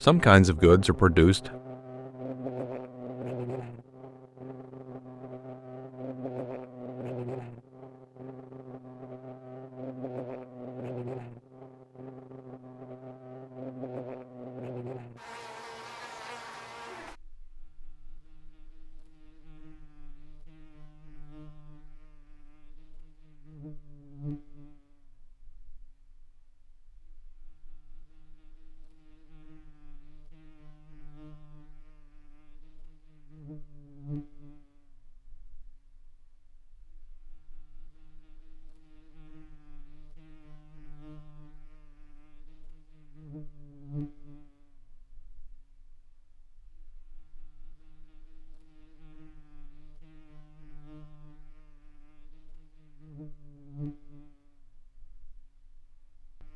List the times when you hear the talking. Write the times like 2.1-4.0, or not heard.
0.0-1.5.